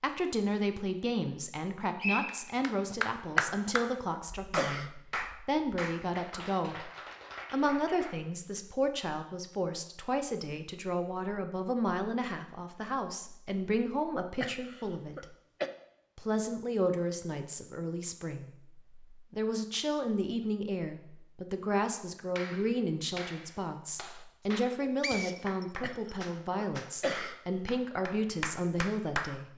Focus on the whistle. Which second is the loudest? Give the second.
2 s.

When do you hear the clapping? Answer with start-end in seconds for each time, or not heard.
2.2-8.6, 22.4-29.4.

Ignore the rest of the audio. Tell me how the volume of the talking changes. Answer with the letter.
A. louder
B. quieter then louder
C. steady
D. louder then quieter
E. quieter
C.